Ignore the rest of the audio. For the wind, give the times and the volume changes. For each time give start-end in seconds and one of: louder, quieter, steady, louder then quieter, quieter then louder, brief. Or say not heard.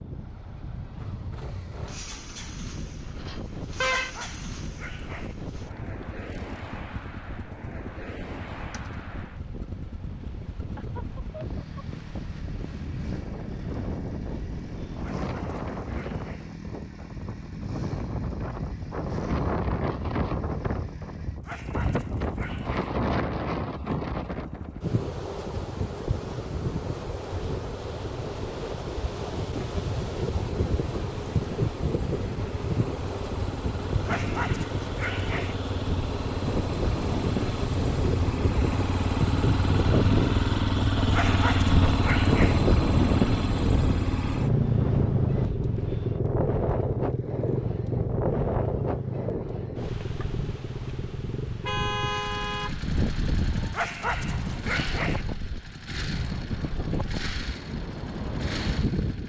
0.0-59.2 louder.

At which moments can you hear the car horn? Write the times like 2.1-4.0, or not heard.
3.2-4.6, 51.5-52.8.